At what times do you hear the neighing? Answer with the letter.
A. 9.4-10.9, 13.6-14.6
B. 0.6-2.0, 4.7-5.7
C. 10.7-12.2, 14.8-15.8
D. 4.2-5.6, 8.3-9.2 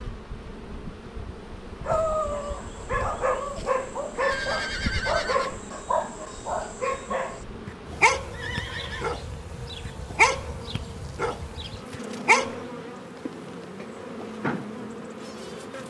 D.